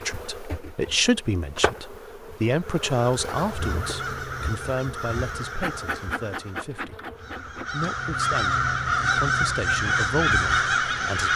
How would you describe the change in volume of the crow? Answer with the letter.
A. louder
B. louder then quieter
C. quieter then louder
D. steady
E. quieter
A.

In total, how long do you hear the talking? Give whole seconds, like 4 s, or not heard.
11 s.